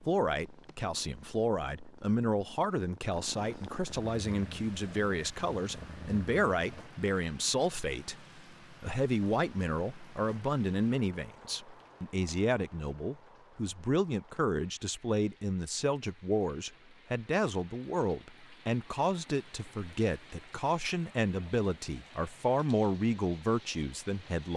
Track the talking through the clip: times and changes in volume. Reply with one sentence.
You can hear the talking from 0.0 to 24.5 s, at a steady volume.